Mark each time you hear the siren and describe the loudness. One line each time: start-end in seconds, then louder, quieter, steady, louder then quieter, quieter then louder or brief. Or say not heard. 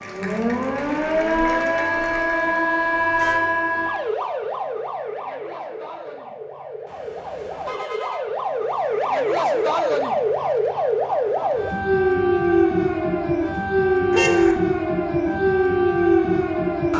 0.0-16.9 quieter then louder.